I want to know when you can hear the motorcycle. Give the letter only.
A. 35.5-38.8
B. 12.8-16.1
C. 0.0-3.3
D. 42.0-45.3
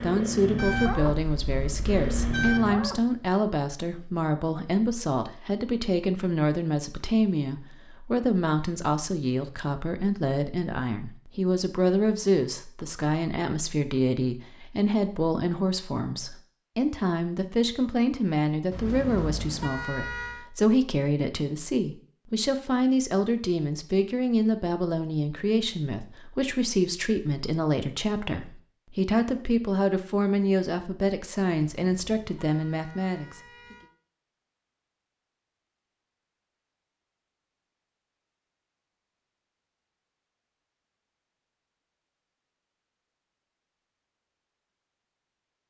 C.